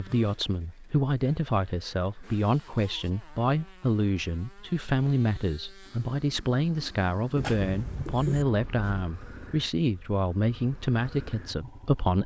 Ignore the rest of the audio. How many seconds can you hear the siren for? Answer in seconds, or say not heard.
not heard.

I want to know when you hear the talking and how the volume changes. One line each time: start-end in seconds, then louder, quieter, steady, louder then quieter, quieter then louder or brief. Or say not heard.
0.0-12.2 steady.